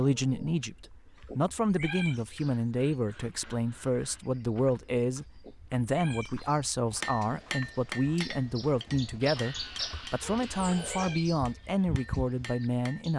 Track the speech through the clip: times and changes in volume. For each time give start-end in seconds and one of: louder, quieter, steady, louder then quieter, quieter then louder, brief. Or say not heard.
0.0-13.1 steady.